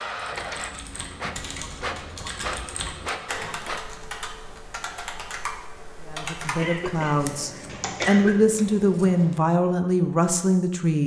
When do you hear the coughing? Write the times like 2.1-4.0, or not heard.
6.5-8.4.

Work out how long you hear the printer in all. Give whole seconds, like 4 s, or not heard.
4 s.